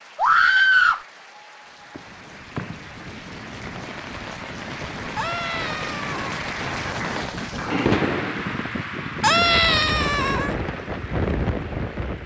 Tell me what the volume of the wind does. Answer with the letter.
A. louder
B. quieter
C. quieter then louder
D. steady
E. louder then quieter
A.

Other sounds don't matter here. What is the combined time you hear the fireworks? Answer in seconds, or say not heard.
7 s.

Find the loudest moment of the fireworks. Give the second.
8 s.